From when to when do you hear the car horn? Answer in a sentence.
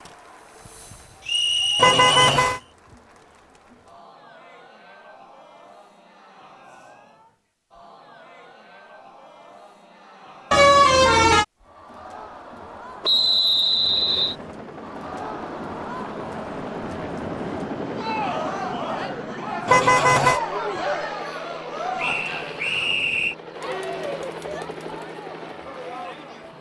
The car horn can be heard from 1.8 to 2.6 s, from 10.5 to 11.4 s and from 19.6 to 20.4 s.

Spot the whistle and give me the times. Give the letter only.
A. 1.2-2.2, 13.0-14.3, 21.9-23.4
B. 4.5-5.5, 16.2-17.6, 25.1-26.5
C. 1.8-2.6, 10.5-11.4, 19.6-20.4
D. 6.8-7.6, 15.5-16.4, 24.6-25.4
A.